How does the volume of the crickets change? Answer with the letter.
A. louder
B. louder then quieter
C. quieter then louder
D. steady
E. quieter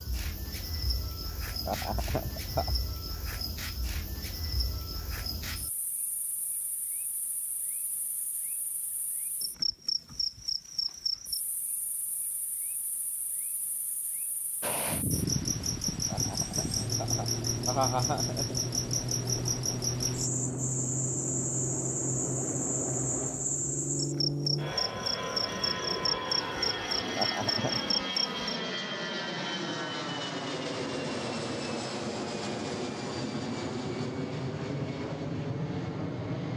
A.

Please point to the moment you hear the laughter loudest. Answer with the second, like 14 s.
18 s.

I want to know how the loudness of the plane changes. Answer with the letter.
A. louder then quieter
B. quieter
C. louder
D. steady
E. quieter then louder
D.